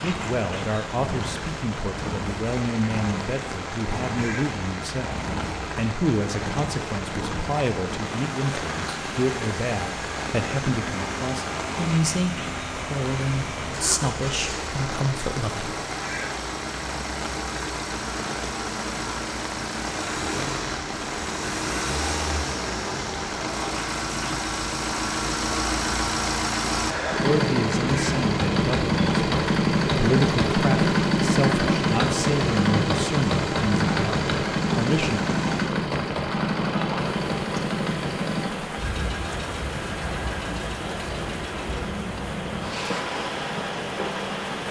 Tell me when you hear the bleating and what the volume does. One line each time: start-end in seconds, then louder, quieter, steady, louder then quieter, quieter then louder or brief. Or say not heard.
not heard.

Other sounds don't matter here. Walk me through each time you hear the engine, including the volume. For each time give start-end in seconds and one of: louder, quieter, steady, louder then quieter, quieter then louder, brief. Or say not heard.
0.0-44.6 louder then quieter.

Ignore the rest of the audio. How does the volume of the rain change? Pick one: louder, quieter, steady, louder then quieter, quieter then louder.
steady.